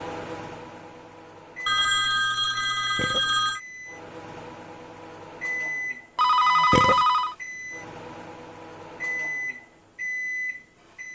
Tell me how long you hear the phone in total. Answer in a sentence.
The phone can be heard for 3 seconds in total.